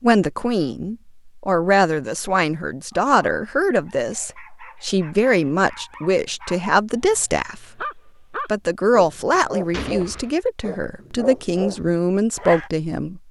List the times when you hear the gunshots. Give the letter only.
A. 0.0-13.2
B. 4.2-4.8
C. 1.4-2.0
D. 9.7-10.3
D.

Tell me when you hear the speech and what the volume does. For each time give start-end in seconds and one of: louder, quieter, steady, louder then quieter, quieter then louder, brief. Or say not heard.
0.0-13.2 steady.